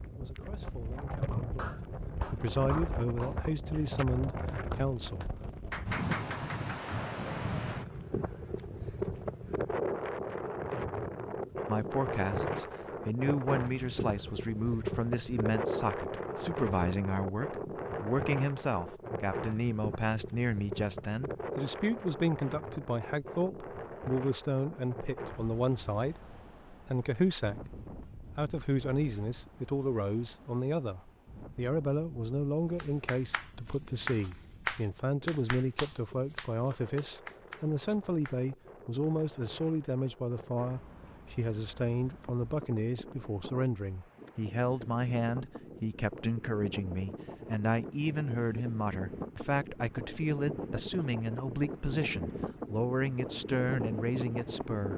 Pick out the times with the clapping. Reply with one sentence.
You can hear the clapping from 1.3 to 7.0 s and from 32.8 to 38.4 s.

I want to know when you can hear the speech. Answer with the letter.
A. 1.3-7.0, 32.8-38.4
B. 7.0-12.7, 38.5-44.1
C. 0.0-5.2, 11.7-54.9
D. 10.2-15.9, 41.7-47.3
C.